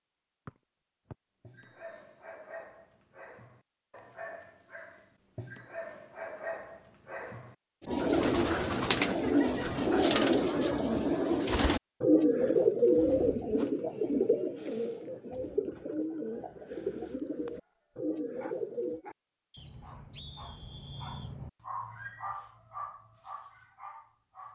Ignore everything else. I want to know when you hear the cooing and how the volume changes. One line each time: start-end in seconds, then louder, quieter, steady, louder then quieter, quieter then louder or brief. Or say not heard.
7.8-19.0 quieter.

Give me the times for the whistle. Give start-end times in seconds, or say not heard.
1.1-2.0, 19.5-21.4.